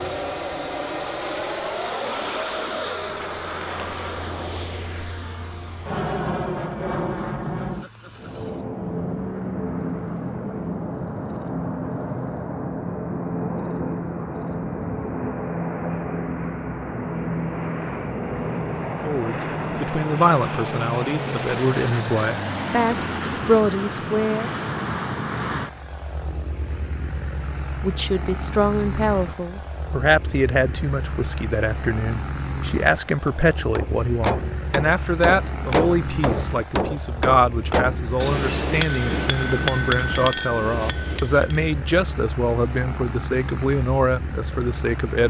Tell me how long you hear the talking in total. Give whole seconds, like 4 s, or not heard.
23 s.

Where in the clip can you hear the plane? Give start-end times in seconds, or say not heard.
0.0-45.2.